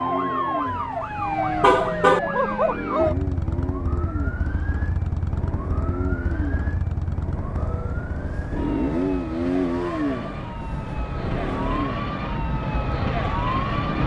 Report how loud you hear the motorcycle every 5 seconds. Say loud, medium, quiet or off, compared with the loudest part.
medium, loud, loud.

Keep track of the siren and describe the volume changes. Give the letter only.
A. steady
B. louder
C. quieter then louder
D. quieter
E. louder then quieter
C.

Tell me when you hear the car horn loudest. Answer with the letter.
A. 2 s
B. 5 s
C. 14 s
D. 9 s
A.